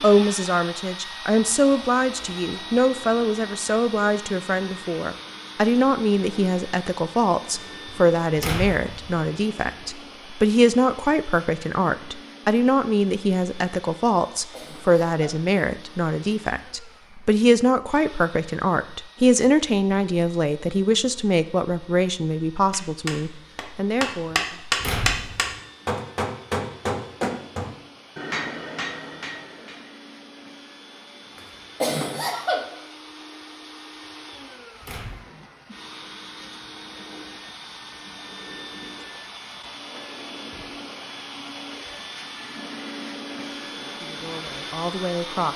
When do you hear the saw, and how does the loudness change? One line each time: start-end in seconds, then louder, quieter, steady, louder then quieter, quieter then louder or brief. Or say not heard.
not heard.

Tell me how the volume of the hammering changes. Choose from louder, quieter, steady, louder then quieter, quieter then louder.
louder then quieter.